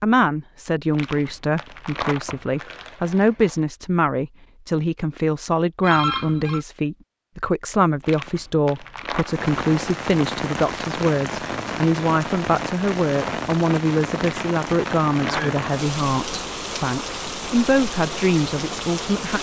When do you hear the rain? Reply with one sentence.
The rain can be heard from 9.2 to 19.3 s.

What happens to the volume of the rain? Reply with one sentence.
The volume of the rain stays about the same.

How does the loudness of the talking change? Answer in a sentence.
The loudness of the talking stays about the same.